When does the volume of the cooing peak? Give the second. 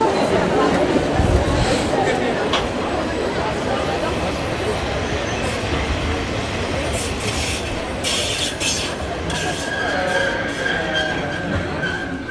1 s.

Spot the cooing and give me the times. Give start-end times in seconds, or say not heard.
0.6-2.1.